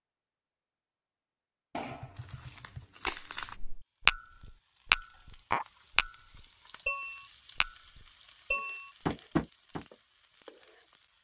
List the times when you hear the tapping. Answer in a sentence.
The tapping can be heard from 1.9 to 9.8 s.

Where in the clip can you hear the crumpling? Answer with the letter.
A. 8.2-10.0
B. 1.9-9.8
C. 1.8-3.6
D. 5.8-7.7
C.